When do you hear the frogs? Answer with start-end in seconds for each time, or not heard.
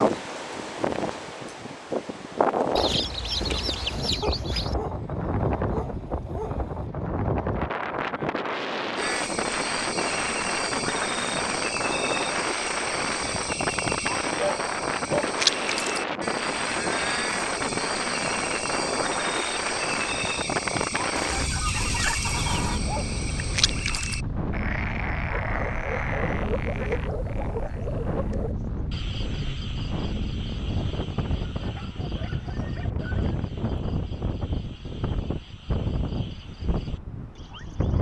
8.9-37.9.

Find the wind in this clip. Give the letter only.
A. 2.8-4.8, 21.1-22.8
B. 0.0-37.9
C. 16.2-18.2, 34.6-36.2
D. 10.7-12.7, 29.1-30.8
B.